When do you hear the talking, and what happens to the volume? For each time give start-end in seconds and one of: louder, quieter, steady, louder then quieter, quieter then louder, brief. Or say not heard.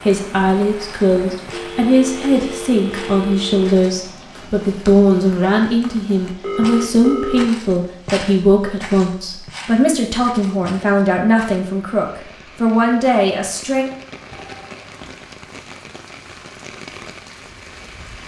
0.1-13.8 steady.